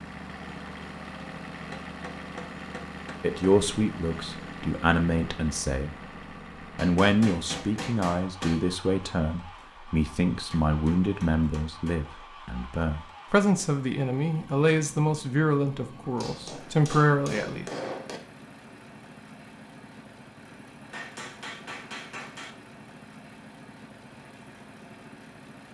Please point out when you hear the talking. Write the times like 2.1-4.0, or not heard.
3.2-6.0, 6.8-17.6.